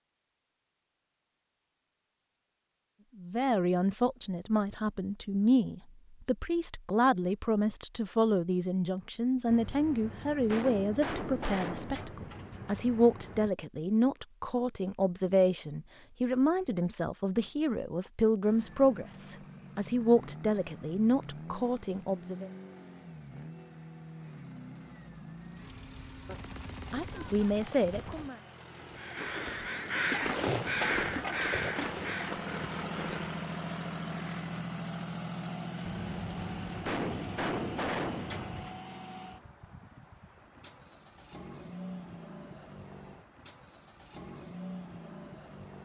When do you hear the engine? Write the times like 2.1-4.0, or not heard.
18.4-45.8.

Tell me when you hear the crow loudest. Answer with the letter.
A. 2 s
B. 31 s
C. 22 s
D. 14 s
B.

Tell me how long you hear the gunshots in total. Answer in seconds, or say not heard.
9 s.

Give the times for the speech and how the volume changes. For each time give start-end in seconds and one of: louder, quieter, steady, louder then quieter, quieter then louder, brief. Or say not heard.
3.1-22.5 steady
26.9-28.4 brief.